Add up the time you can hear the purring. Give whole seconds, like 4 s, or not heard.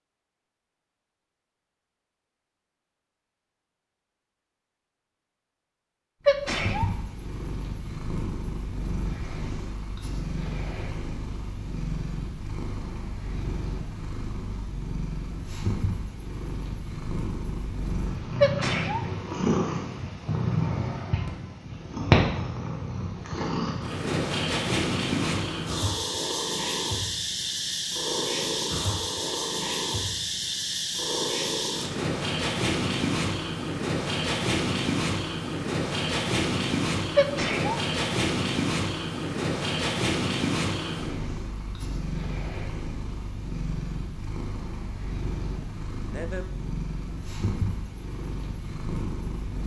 43 s.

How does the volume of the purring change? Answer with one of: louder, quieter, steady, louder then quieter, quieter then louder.
louder then quieter.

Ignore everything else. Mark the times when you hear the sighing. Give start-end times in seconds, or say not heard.
45.6-46.5.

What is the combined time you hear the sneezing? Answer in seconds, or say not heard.
2 s.